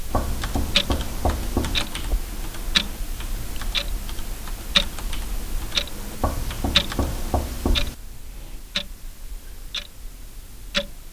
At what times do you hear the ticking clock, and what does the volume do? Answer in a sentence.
You can hear the ticking clock from 0.0 to 11.0 s, getting quieter.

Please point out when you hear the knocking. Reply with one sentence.
You can hear the knocking from 0.1 to 1.9 s and from 6.2 to 8.0 s.